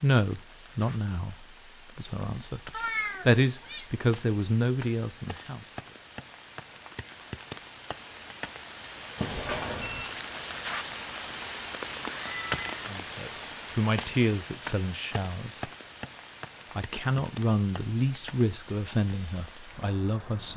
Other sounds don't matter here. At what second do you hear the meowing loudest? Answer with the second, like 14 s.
3 s.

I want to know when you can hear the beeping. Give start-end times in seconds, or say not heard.
9.2-10.1.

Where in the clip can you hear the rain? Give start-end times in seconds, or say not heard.
0.0-20.5.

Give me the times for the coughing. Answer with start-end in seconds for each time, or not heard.
not heard.